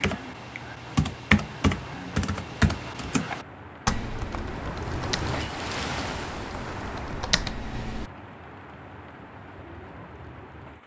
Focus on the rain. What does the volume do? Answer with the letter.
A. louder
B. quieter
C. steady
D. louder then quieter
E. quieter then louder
D.